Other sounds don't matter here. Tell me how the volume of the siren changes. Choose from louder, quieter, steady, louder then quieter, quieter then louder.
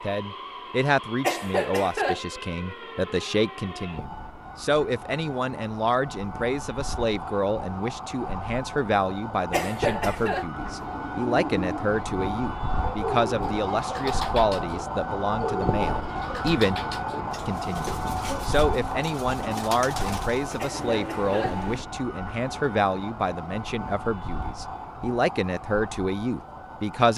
louder then quieter.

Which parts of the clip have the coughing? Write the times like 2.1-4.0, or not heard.
1.2-2.2, 9.5-10.4, 20.6-21.7.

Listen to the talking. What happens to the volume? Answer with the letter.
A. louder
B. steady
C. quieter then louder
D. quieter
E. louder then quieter
B.